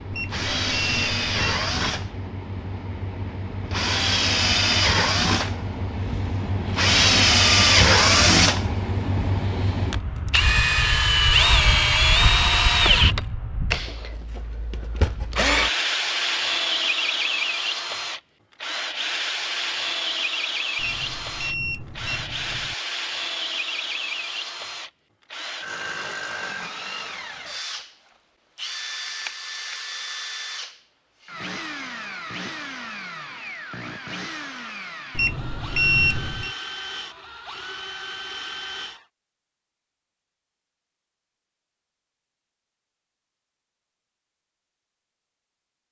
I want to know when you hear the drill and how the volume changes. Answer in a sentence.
You can hear the drill from 0.0 to 39.0 s, getting quieter.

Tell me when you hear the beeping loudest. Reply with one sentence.
The loudest moment of the beeping is at 36 seconds.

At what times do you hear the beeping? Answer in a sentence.
You can hear the beeping from 0.1 to 2.1 s, from 20.8 to 22.8 s and from 35.1 to 36.5 s.